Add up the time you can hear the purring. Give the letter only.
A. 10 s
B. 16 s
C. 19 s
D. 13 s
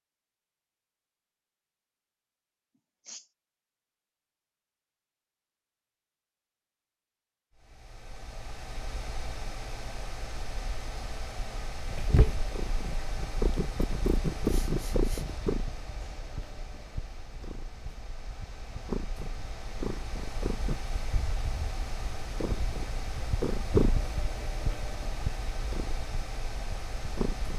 B.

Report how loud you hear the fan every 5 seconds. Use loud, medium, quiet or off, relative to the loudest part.
off, loud, loud, medium, loud, loud.